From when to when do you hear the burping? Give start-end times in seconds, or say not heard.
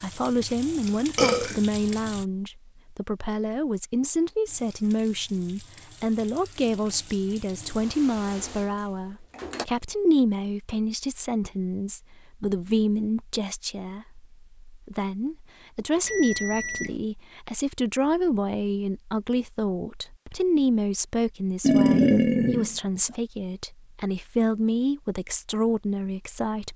1.1-1.6, 21.6-23.1.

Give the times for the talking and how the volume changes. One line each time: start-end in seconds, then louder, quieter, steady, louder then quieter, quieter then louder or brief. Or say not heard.
0.0-26.7 steady.